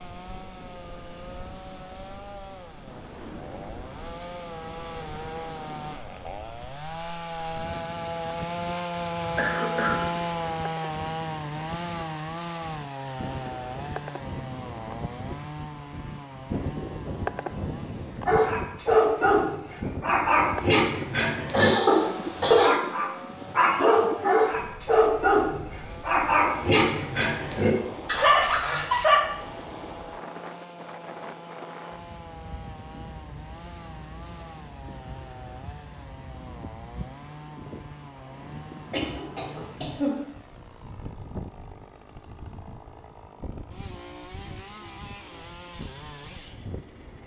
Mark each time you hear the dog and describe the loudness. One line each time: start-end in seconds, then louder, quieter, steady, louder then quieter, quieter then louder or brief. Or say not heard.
18.2-29.2 steady.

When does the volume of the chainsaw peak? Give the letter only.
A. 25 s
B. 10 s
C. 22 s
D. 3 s
B.